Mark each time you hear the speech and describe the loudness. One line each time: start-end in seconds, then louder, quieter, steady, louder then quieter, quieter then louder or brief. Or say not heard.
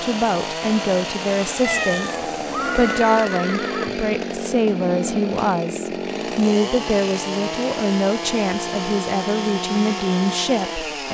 0.0-10.8 steady.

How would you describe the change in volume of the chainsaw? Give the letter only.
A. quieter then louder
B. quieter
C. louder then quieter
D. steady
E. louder
D.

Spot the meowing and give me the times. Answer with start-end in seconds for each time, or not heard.
1.6-3.1.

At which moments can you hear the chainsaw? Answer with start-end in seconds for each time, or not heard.
0.0-11.1.